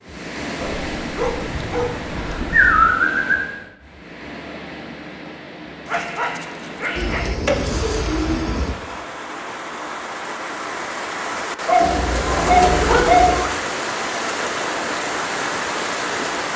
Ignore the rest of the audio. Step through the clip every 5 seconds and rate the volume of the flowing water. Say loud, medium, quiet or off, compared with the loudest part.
medium, medium, loud, loud.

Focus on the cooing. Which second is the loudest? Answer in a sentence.
The loudest moment of the cooing is at 3 seconds.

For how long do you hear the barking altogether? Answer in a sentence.
The barking can be heard for 6 seconds in total.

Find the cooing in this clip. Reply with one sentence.
You can hear the cooing from 1.4 to 3.4 s, from 7.0 to 8.8 s and from 11.8 to 13.5 s.